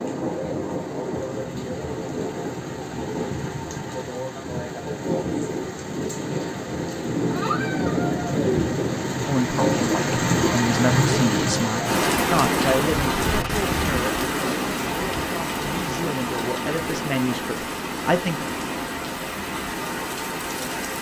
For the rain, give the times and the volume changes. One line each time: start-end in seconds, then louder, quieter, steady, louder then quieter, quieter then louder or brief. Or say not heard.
0.0-20.9 louder then quieter.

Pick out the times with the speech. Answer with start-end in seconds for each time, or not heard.
9.2-18.4.